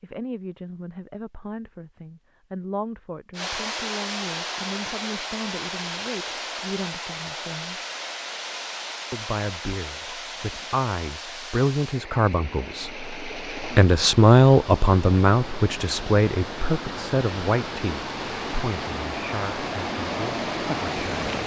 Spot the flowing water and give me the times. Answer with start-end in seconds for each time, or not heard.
3.4-21.4.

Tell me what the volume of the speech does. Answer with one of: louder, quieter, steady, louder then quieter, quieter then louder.
louder then quieter.